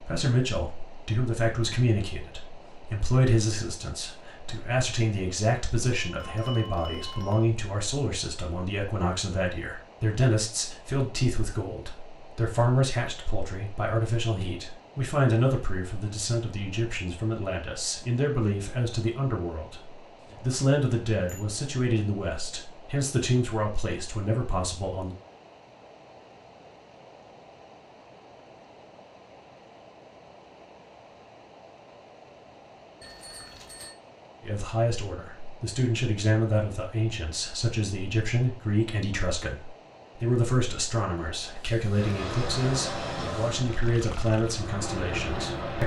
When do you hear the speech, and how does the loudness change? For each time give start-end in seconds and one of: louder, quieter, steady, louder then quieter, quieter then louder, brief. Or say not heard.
0.0-25.1 steady
34.5-45.8 steady.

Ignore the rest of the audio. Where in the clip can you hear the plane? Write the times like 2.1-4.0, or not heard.
41.9-45.8.